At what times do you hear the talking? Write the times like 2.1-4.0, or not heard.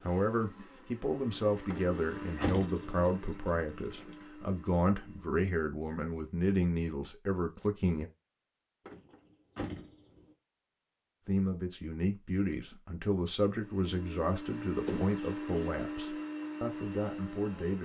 0.0-8.1, 11.2-17.8.